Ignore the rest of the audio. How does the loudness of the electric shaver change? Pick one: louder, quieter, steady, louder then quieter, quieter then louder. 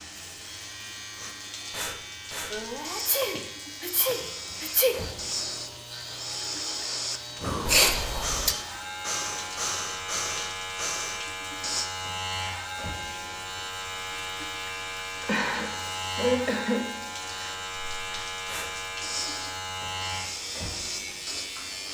louder.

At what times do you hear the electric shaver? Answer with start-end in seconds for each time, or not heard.
0.2-21.8.